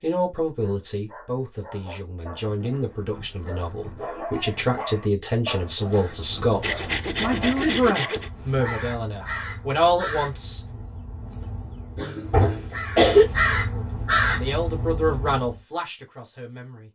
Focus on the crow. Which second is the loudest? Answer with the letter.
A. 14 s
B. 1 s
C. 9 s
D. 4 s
A.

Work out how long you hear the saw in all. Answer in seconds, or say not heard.
2 s.